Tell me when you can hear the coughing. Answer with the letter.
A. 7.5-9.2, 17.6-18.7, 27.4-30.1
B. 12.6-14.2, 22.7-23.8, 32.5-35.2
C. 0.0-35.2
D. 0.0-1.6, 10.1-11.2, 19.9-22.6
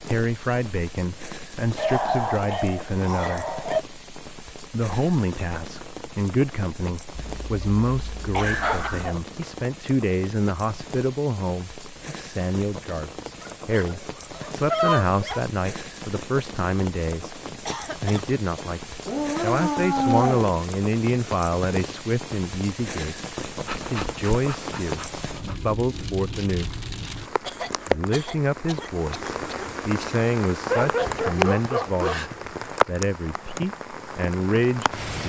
A.